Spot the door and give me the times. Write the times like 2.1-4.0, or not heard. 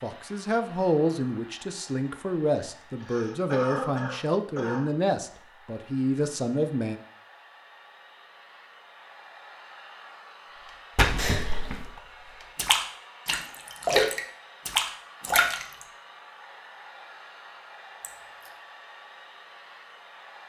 not heard.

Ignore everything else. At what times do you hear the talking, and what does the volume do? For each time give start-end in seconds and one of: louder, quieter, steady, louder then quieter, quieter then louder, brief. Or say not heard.
0.0-7.0 steady.